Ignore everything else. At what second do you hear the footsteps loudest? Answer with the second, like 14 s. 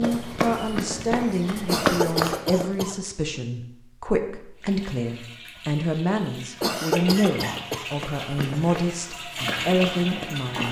2 s.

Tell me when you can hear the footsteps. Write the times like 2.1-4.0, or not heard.
0.0-2.6, 7.9-10.4.